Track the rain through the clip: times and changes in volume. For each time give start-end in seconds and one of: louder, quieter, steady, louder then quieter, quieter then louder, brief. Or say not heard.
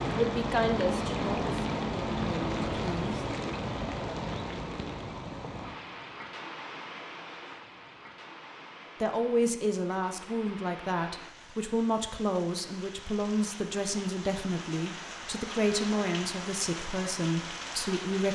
0.0-18.3 quieter then louder.